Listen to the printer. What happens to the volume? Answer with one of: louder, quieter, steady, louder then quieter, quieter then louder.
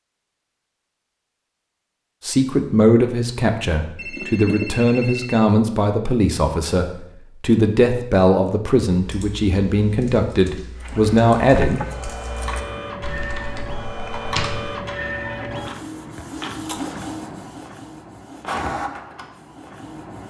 steady.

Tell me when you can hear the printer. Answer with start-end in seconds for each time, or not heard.
10.8-20.2.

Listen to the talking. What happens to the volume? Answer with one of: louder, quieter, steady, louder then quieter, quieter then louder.
steady.